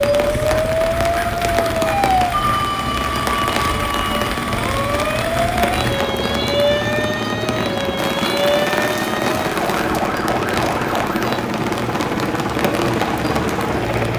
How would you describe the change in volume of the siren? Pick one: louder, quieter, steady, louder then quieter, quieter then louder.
quieter.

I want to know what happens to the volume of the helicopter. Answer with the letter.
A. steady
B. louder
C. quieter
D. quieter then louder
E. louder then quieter
B.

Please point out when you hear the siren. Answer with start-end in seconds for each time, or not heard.
0.0-11.3.